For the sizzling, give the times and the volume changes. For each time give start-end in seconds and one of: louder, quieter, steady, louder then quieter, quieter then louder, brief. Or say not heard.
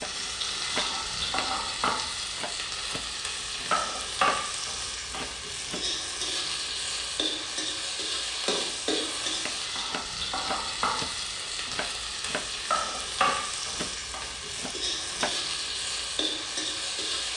0.0-17.3 steady.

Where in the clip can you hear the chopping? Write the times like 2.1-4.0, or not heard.
0.0-5.8, 9.3-15.4.